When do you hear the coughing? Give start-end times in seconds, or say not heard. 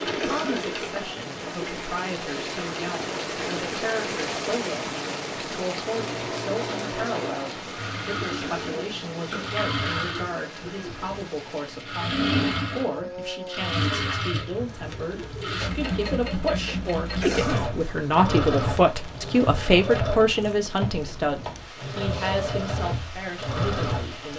0.1-0.7, 8.4-9.6, 17.2-17.8.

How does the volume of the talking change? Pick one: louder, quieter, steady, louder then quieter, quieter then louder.
louder.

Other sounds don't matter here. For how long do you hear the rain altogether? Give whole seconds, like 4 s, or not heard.
24 s.